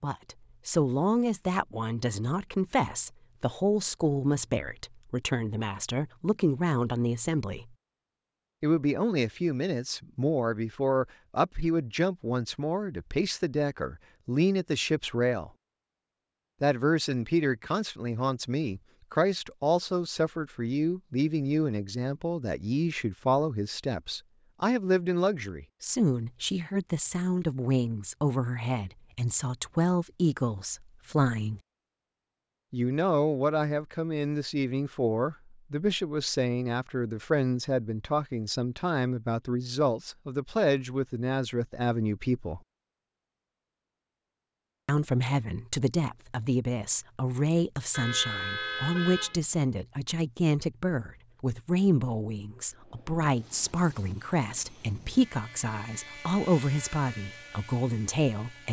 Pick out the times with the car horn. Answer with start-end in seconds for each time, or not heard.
47.9-49.4.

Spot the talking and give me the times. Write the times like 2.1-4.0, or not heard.
0.0-7.7, 8.6-15.5, 16.6-31.6, 32.7-42.6, 44.9-58.6.